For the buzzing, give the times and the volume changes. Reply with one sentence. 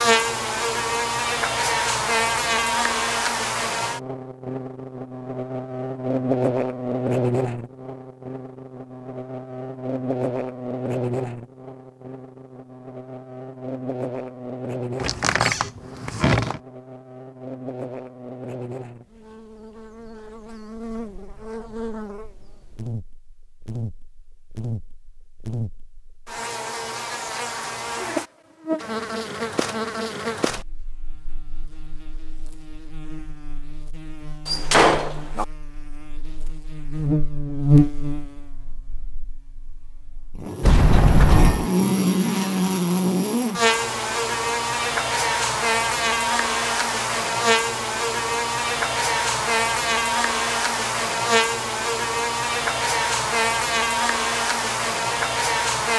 The buzzing can be heard from 0.0 to 55.9 s, getting quieter then louder.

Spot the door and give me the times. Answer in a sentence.
The door can be heard from 15.0 to 16.6 s, from 34.5 to 35.5 s and from 40.6 to 41.5 s.